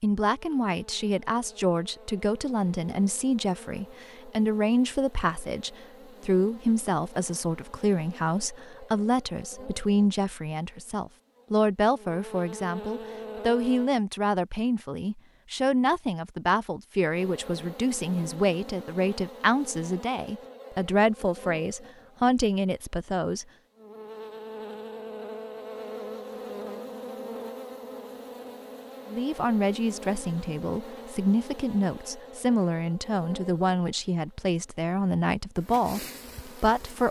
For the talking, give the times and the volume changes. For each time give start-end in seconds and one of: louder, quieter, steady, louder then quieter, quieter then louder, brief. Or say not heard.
0.0-23.4 steady
29.1-37.0 steady.